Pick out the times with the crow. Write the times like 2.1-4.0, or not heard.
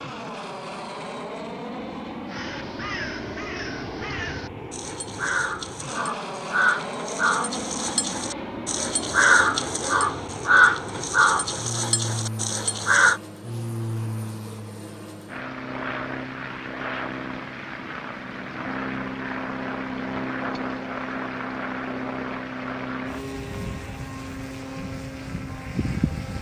2.2-13.2.